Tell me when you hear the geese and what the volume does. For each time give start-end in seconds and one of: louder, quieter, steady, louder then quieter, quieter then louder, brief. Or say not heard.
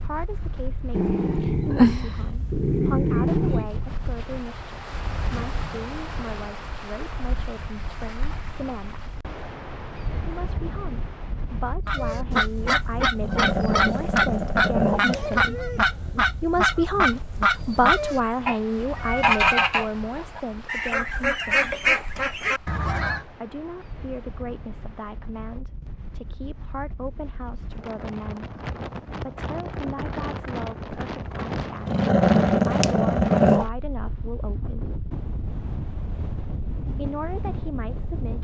11.8-23.2 steady.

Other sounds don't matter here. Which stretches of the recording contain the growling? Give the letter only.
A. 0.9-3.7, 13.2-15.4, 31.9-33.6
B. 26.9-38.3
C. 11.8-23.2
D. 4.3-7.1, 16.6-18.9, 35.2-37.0
A.